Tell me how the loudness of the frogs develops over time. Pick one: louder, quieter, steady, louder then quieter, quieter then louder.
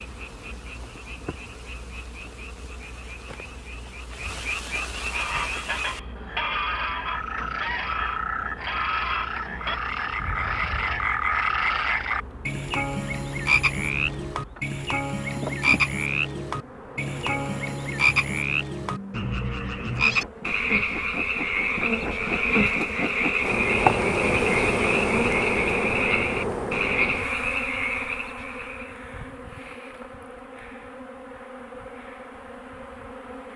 louder.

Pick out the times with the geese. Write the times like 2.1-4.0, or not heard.
5.0-11.1.